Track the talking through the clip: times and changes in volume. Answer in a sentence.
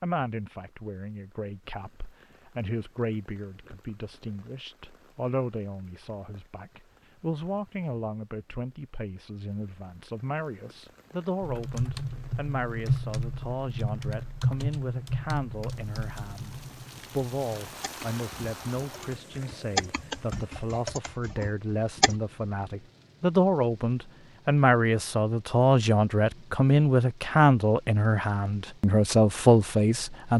The talking can be heard from 0.0 to 30.3 s, getting louder.